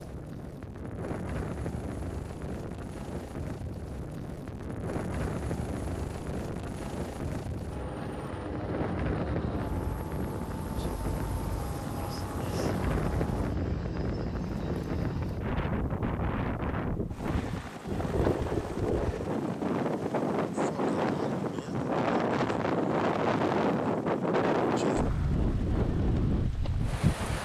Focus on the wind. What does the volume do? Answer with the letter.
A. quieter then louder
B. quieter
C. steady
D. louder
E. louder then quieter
D.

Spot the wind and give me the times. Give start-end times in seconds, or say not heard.
0.0-27.4.